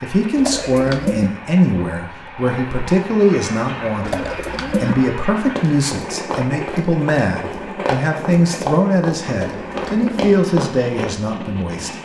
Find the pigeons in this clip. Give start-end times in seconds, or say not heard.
0.3-1.3, 4.0-5.0, 9.4-10.2.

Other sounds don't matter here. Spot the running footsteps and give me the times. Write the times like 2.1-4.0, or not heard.
5.5-11.2.